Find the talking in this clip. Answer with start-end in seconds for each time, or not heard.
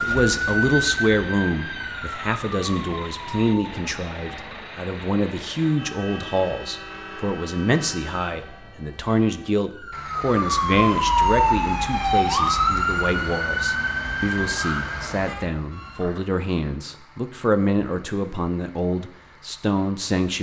0.0-20.3.